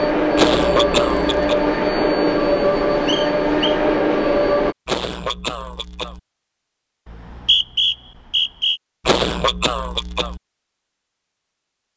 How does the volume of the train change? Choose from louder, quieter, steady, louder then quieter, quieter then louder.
steady.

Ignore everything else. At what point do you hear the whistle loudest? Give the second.
8 s.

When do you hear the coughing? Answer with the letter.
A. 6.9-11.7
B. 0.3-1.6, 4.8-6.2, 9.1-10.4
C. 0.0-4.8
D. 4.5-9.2
B.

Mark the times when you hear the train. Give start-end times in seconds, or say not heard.
0.0-4.8.